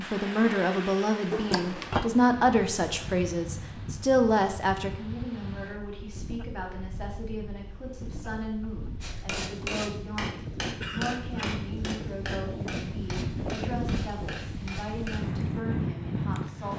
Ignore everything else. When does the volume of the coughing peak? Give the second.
2 s.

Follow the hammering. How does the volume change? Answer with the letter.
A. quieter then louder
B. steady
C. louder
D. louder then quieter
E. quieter
E.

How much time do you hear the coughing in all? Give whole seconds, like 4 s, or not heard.
2 s.